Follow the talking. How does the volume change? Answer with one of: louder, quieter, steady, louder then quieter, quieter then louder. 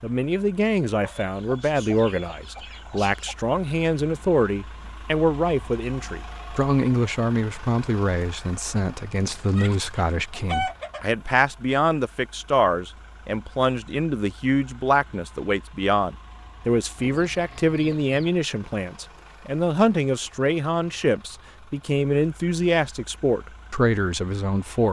steady.